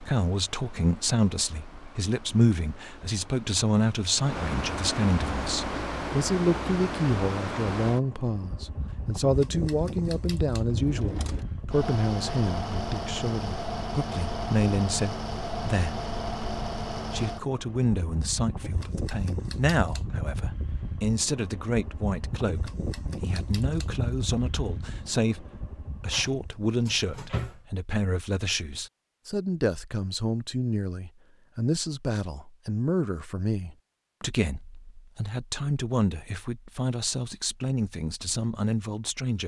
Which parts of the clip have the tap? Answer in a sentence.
You can't hear the tap here.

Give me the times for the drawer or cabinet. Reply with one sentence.
The drawer or cabinet can be heard from 10.7 to 11.4 s and from 26.1 to 27.6 s.